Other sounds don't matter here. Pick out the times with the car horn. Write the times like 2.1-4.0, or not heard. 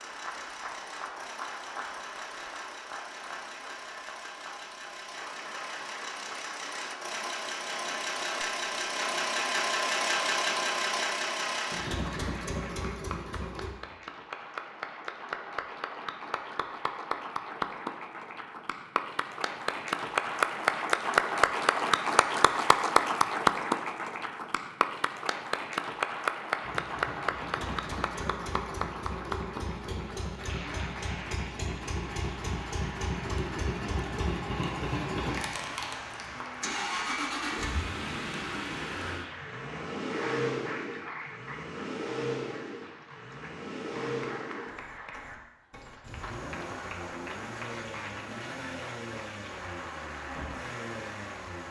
not heard.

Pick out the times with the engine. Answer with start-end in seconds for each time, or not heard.
0.0-13.8, 26.6-51.6.